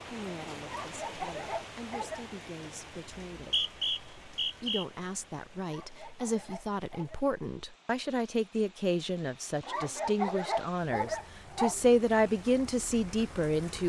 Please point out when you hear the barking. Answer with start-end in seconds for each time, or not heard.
0.6-2.2, 5.6-7.2, 9.6-11.8.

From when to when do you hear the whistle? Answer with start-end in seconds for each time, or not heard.
3.1-4.8.